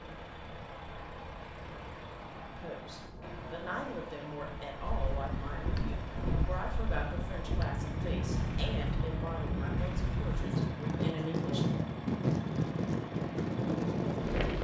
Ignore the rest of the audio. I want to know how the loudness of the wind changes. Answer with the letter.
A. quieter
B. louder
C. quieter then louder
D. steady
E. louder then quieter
B.